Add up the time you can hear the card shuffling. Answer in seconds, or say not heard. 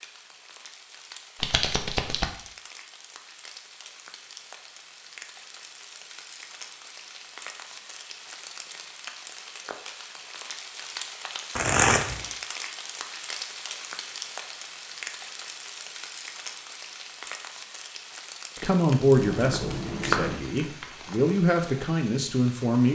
3 s.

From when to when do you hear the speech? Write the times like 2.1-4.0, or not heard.
18.6-22.8.